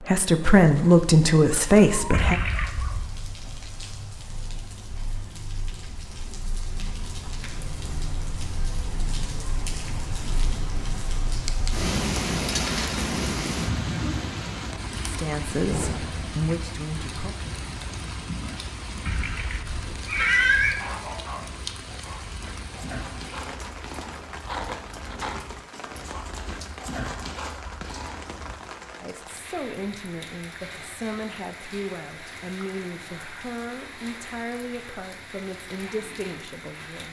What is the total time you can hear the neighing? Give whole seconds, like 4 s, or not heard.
3 s.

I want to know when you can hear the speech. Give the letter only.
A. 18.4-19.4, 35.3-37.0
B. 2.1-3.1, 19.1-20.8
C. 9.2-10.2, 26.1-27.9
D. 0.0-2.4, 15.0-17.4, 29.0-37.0
D.